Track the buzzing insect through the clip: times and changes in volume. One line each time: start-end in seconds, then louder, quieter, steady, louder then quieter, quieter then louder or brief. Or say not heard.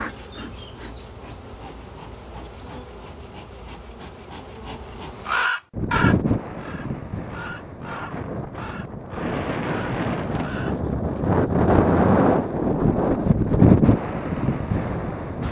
0.0-5.5 steady.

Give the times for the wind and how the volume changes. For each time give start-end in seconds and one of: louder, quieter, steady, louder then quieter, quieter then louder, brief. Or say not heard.
5.7-15.4 louder.